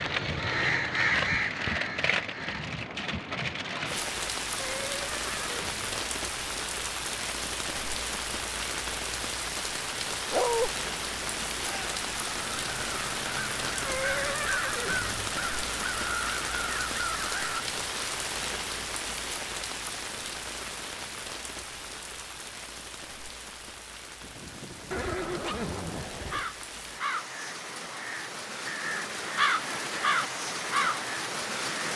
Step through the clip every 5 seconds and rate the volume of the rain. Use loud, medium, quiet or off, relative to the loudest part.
loud, loud, loud, loud, medium, medium, loud.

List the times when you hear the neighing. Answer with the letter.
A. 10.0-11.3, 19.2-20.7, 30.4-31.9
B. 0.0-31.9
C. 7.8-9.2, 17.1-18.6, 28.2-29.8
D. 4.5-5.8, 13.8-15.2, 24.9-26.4
D.